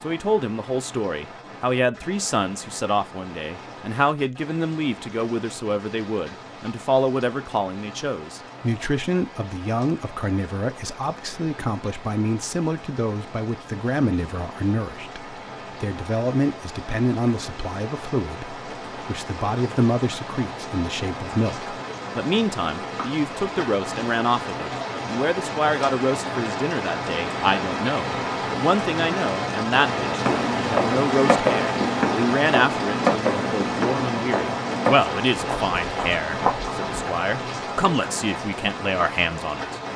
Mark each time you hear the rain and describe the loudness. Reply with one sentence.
The rain can be heard from 0.0 to 39.9 s, getting louder.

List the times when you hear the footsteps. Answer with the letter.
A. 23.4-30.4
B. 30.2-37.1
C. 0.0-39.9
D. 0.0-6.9
B.